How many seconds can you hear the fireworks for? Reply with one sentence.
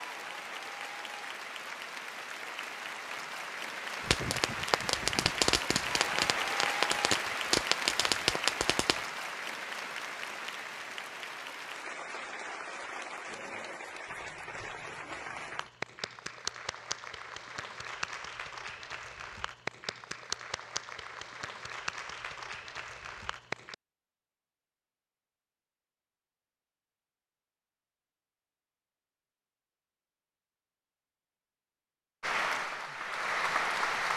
The fireworks can be heard for 5 seconds in total.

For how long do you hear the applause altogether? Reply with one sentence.
The applause can be heard for 26 seconds in total.